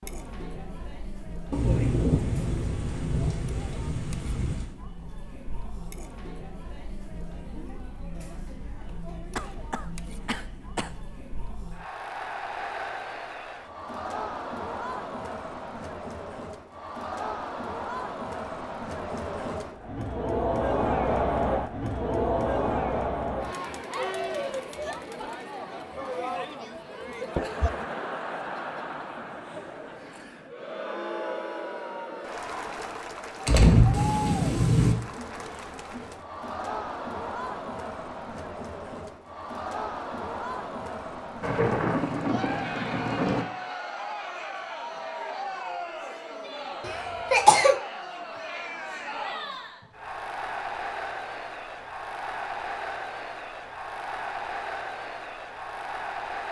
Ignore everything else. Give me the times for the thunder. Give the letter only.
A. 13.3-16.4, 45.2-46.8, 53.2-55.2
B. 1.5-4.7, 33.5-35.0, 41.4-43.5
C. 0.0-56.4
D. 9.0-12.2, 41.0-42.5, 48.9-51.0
B.